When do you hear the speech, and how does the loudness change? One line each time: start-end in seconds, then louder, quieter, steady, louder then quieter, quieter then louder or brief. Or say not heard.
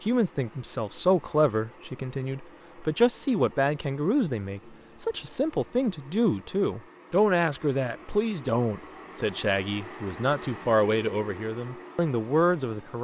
0.0-12.9 steady.